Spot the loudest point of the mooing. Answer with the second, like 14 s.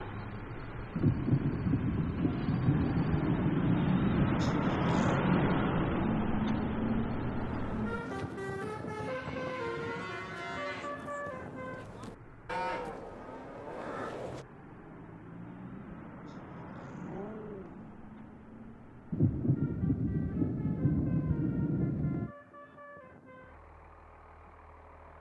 13 s.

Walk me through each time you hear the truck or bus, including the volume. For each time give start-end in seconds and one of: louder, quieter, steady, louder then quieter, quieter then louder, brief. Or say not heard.
0.0-25.1 quieter.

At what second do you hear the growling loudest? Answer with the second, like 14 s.
5 s.